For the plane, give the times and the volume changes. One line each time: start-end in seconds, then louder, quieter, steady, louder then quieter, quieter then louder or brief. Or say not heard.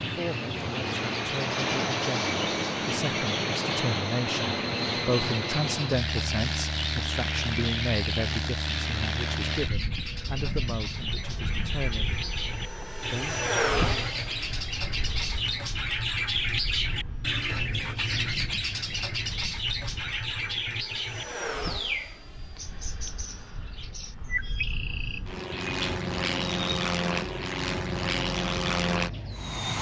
0.0-29.7 quieter then louder.